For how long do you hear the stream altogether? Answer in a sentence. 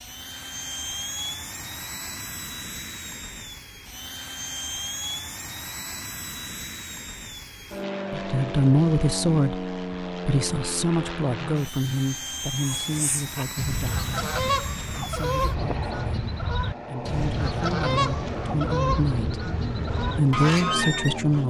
You can't hear the stream here.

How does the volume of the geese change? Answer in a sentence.
The loudness of the geese stays about the same.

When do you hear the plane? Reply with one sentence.
You can hear the plane from 0.0 to 21.4 s.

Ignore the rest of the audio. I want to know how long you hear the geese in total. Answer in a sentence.
You can hear the geese for 9 seconds altogether.